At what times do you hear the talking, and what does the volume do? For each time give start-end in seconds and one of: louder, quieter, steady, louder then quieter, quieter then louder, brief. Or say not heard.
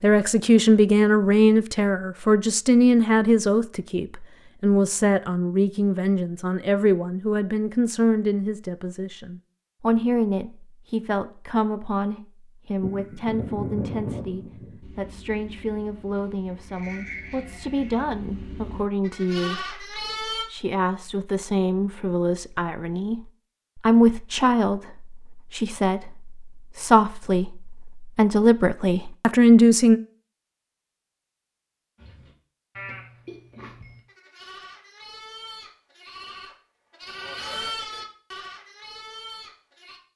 0.0-30.0 quieter then louder.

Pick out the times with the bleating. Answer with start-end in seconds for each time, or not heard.
12.8-20.4, 31.9-40.0.